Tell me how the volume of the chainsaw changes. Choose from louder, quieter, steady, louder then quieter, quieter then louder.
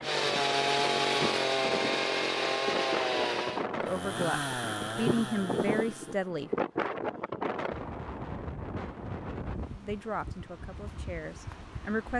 quieter.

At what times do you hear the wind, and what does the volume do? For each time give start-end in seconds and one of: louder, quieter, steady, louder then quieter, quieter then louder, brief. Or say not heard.
0.0-12.1 louder then quieter.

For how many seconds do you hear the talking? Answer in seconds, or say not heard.
5 s.